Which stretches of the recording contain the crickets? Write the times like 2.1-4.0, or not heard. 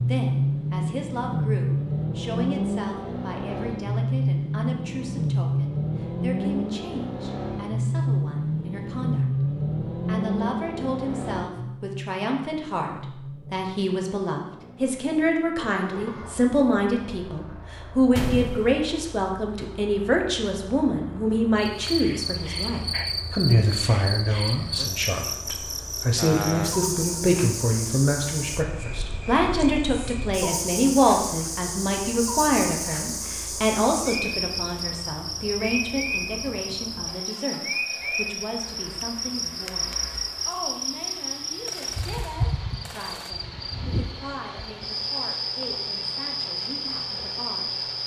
21.6-48.0.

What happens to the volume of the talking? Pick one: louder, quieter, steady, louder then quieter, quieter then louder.
louder then quieter.